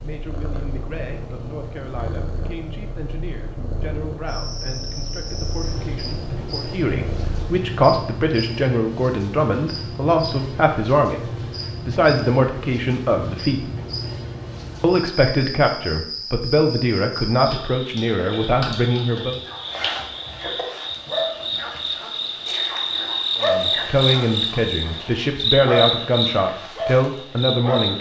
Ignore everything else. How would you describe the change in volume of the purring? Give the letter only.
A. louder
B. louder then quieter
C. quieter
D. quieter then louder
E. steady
E.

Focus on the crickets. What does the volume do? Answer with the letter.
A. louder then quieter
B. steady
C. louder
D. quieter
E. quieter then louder
C.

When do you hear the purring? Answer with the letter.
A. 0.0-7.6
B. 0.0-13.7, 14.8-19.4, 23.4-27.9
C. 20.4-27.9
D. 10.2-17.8
A.